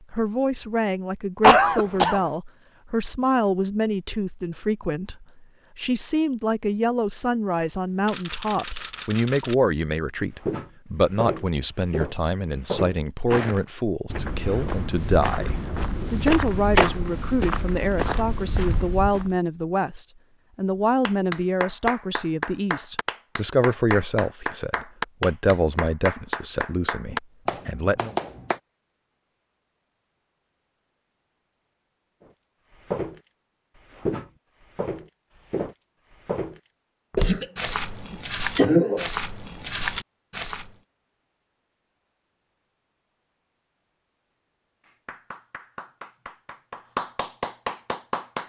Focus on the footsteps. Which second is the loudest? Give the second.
17 s.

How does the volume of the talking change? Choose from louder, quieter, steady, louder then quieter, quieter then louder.
steady.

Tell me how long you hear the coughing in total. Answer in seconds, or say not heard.
3 s.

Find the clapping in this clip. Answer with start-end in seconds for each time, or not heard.
21.1-28.6, 44.8-48.4.